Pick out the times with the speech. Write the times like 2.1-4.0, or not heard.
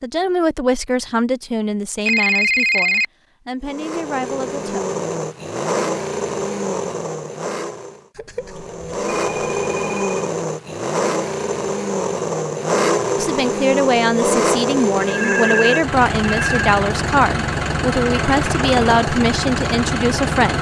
0.0-4.8, 13.2-20.5.